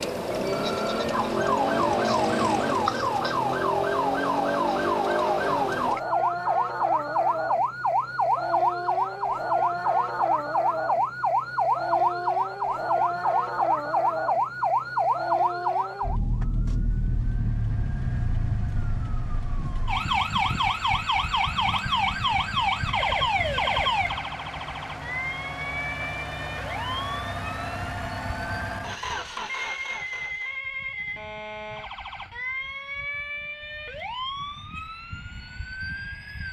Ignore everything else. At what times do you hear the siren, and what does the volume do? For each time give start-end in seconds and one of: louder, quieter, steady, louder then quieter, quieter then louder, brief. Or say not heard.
0.0-36.4 quieter.